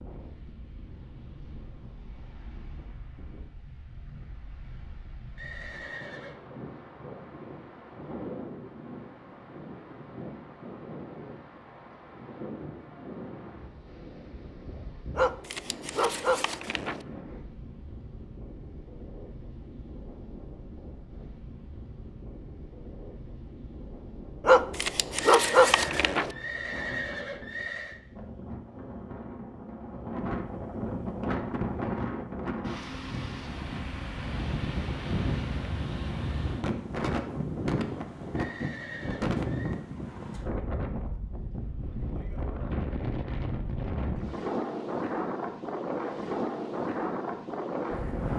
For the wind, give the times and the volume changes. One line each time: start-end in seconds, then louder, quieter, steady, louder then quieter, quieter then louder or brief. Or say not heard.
0.0-48.3 louder.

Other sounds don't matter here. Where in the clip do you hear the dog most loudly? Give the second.
25 s.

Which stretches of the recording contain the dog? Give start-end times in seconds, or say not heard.
15.2-17.1, 24.4-26.3.